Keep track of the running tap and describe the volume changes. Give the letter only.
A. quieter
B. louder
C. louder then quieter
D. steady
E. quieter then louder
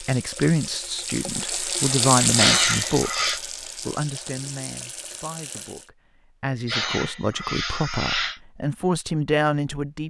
C.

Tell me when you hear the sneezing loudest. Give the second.
3 s.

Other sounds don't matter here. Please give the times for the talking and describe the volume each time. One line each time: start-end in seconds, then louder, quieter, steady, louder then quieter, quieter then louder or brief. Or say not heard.
0.0-10.0 quieter then louder.